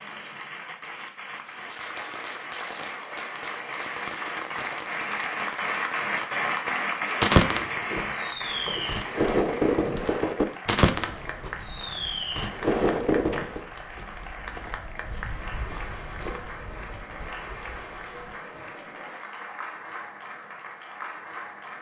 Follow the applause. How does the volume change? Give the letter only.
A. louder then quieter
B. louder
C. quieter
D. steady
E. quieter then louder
A.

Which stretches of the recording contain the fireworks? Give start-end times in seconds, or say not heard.
1.4-13.7.